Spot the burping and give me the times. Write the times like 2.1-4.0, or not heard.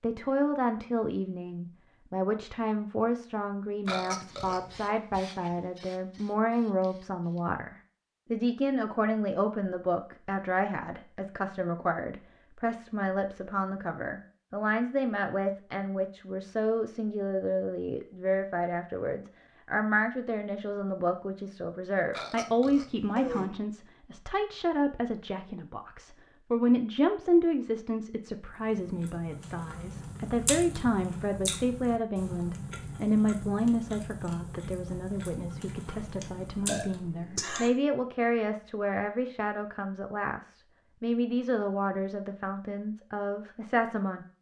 3.9-5.0, 22.1-23.4, 36.0-37.7.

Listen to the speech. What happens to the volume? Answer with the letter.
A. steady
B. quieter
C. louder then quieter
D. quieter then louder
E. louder
A.